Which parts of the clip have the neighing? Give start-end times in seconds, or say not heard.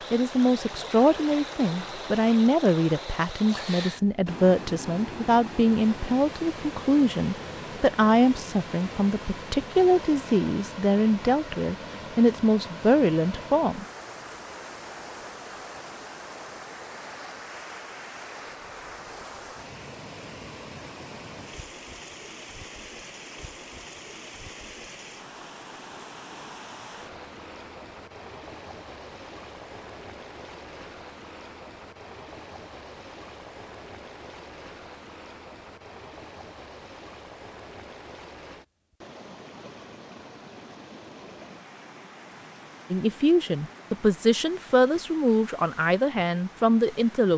not heard.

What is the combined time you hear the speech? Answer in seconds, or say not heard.
18 s.